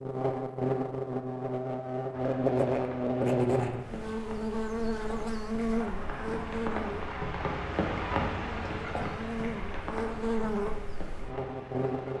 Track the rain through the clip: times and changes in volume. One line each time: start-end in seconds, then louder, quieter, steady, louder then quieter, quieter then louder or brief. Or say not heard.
2.1-12.1 louder then quieter.